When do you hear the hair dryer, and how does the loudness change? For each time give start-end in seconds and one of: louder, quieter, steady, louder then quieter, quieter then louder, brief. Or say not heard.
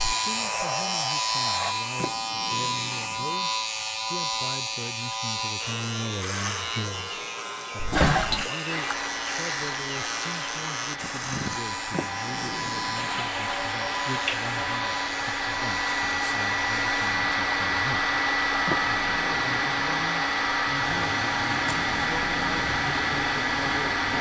0.0-1.8 brief
8.7-24.1 louder.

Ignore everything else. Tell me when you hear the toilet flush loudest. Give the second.
8 s.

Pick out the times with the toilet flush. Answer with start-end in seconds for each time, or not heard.
7.8-8.5, 12.9-14.9.